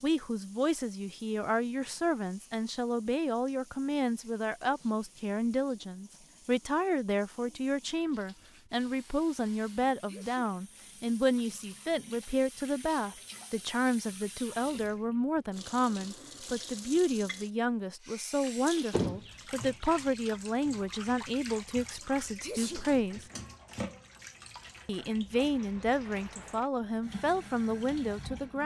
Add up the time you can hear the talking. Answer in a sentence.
You can hear the talking for 27 seconds altogether.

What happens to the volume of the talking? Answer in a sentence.
The volume of the talking stays about the same.